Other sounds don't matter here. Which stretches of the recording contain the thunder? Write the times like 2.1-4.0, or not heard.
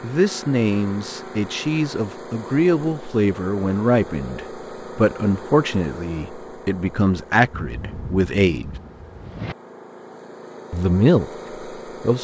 7.5-9.6.